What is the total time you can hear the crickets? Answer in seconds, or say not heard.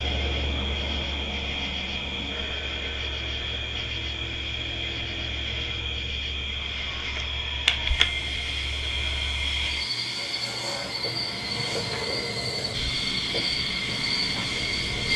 15 s.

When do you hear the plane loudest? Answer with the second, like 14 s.
15 s.